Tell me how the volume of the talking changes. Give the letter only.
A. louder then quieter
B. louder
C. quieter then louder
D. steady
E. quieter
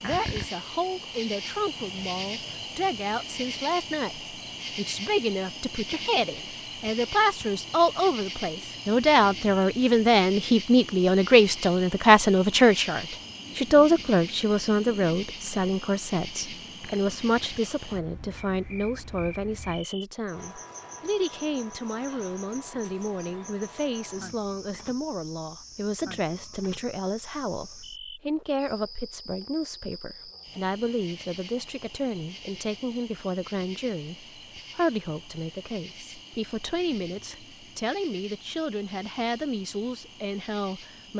A.